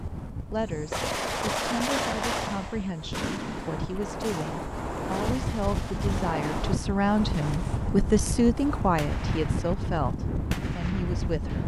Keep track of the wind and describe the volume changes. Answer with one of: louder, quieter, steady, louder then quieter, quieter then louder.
louder.